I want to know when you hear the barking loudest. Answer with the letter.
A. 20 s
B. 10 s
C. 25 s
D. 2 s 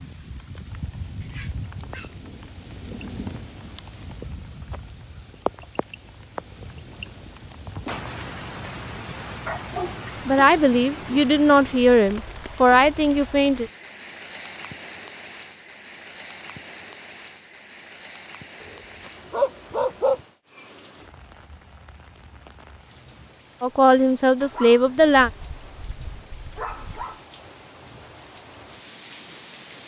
A.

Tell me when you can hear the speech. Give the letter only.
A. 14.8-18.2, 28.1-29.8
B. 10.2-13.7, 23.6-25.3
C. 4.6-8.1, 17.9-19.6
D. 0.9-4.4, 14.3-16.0
B.